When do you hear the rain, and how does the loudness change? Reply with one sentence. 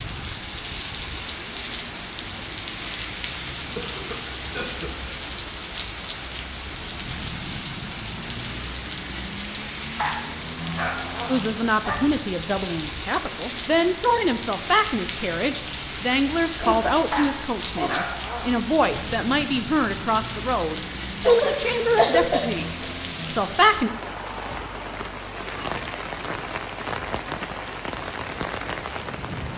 You can hear the rain from 0.0 to 29.5 s, at a steady volume.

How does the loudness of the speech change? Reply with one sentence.
The volume of the speech stays about the same.